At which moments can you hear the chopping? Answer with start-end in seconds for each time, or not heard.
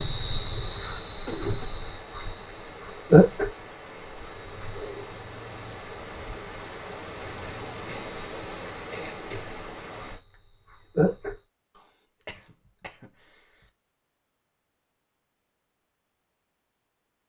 not heard.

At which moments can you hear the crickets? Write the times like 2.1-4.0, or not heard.
0.0-11.4.